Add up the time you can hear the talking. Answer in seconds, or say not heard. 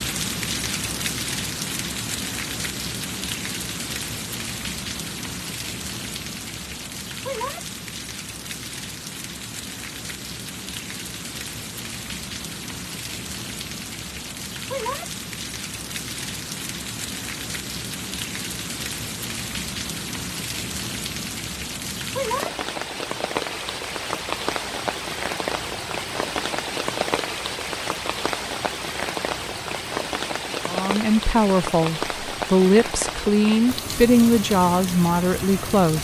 5 s.